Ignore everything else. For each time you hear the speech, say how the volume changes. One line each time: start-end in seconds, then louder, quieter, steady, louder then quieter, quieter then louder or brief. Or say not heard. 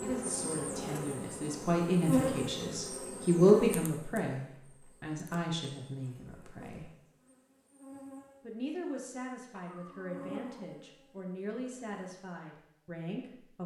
0.0-6.9 louder then quieter
8.4-13.6 steady.